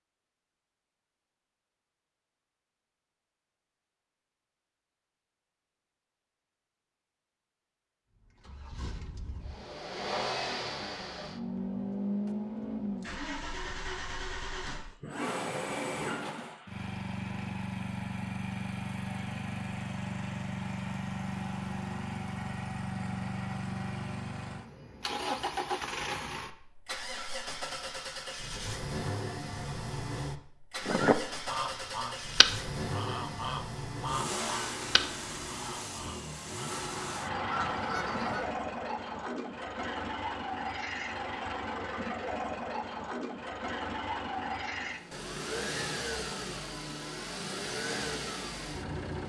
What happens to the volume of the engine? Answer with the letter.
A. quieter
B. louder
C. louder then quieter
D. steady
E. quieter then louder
D.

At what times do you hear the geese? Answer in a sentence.
The geese can be heard from 30.8 to 38.5 s.